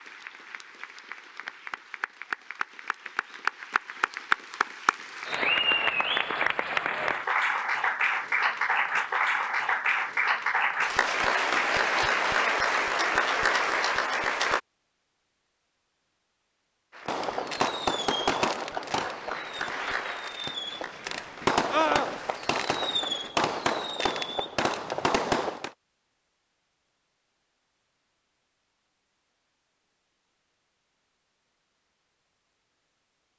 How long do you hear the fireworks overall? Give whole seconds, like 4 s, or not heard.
9 s.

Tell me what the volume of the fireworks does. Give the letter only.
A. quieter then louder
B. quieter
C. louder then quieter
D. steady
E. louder
A.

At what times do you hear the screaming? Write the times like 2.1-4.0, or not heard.
21.7-22.1.